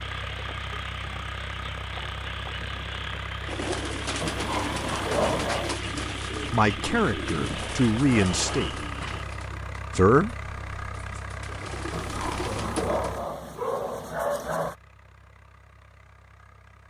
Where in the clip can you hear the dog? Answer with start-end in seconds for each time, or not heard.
4.2-5.8, 11.9-14.8.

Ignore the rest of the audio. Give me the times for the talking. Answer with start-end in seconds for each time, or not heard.
5.9-8.8, 9.9-10.3.